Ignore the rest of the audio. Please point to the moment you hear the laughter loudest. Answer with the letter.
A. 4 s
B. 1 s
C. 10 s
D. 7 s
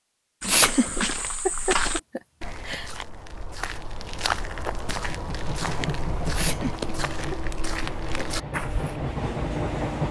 B.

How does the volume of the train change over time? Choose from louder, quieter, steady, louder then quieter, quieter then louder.
quieter then louder.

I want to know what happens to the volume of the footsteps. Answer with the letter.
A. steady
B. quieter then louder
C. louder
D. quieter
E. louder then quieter
B.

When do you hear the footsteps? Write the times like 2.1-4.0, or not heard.
0.4-9.0.